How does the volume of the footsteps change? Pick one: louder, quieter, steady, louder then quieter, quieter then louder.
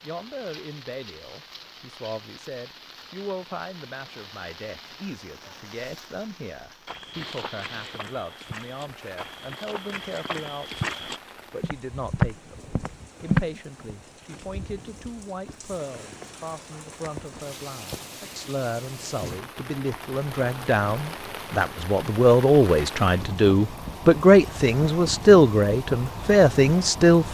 louder.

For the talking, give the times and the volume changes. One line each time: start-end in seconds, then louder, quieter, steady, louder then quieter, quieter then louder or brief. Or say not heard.
0.0-27.2 louder.